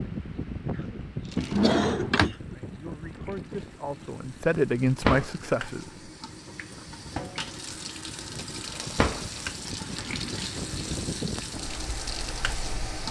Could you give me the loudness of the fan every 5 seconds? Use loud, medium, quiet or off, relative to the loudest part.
loud, medium, loud.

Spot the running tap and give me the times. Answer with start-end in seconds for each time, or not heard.
0.0-13.0.